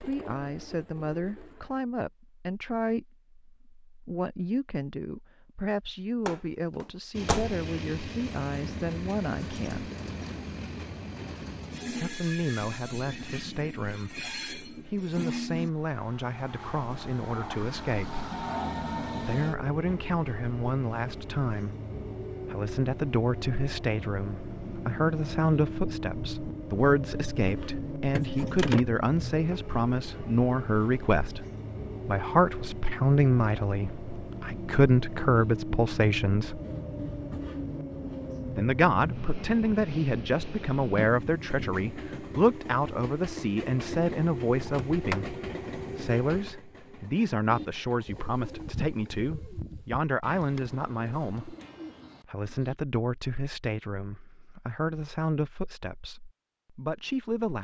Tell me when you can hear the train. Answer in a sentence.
You can hear the train from 7.1 to 49.1 s.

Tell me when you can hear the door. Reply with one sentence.
You can hear the door from 6.2 to 7.6 s, from 28.1 to 28.9 s and from 44.6 to 45.2 s.